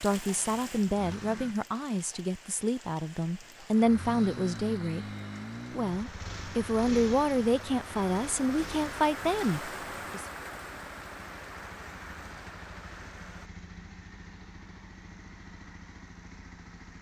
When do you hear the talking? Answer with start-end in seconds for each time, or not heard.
0.0-5.0, 5.8-10.2.